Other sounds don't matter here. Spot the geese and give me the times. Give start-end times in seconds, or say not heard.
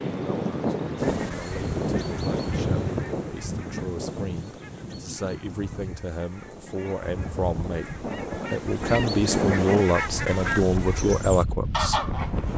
0.9-12.5.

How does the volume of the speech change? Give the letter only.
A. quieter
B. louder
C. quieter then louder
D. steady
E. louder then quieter
B.